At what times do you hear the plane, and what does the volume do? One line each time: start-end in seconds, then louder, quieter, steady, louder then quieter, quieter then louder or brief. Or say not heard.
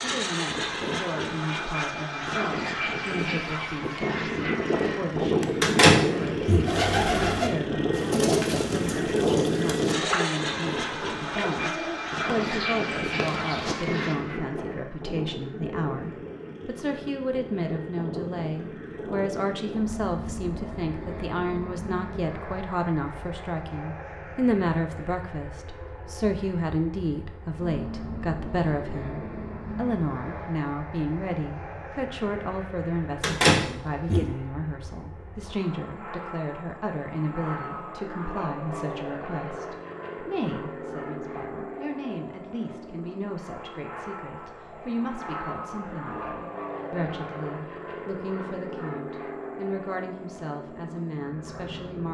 0.0-52.0 quieter.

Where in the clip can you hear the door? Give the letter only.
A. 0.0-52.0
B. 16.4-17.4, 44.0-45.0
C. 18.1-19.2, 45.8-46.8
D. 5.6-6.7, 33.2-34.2
D.